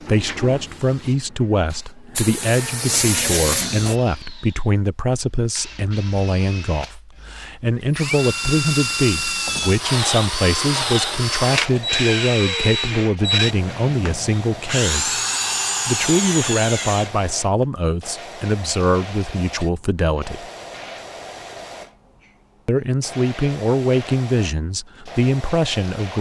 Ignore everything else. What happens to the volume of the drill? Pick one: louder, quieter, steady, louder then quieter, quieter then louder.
louder.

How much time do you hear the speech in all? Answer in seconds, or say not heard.
23 s.